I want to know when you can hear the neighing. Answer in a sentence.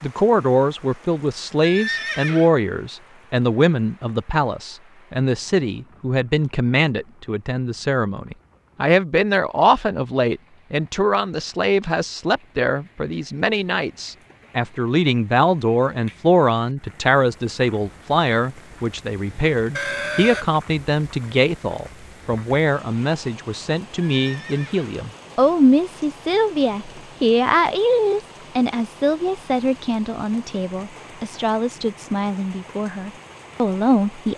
The neighing can be heard from 1.6 to 2.5 s, from 19.8 to 20.4 s and from 24.1 to 24.9 s.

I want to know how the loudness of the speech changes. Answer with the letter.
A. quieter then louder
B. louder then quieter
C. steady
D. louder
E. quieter
C.